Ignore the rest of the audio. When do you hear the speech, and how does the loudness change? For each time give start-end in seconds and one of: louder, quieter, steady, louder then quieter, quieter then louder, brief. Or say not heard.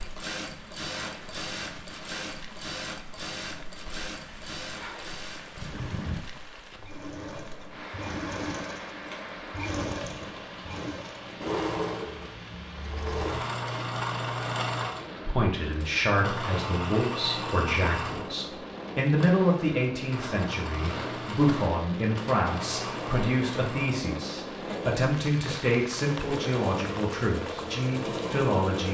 15.2-28.9 steady.